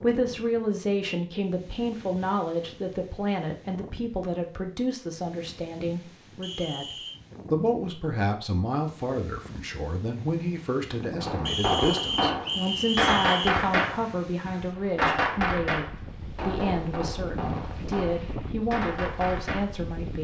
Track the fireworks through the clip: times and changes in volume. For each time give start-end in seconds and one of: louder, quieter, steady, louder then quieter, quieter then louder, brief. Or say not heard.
11.2-19.7 quieter.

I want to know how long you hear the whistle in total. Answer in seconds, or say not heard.
3 s.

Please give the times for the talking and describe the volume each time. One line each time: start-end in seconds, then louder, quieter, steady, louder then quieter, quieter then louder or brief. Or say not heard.
0.0-20.1 steady.